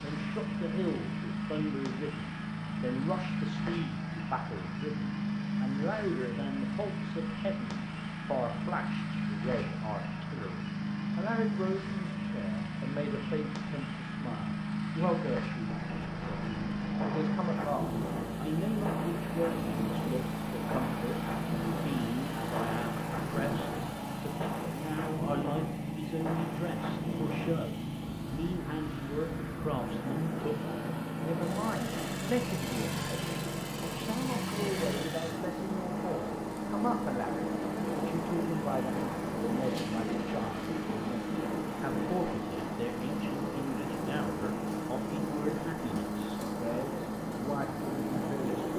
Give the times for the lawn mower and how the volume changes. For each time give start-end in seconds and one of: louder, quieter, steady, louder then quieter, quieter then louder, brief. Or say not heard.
0.0-48.7 steady.